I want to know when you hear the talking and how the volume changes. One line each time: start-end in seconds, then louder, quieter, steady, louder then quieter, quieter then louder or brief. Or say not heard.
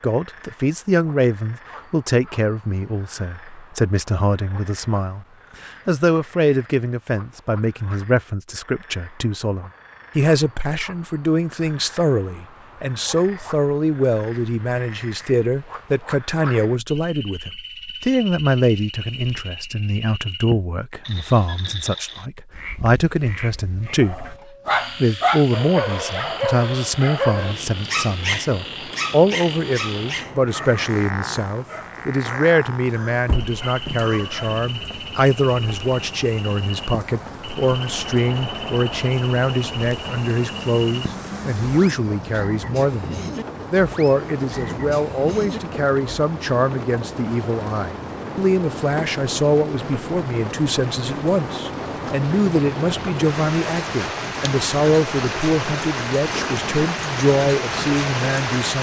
0.0-24.2 steady
25.0-58.7 steady.